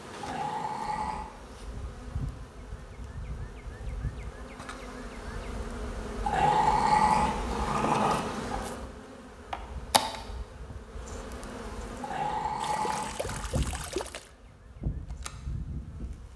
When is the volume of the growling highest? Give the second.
7 s.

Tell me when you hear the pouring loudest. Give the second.
14 s.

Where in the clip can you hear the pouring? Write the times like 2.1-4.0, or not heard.
12.6-14.3.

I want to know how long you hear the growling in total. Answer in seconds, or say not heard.
5 s.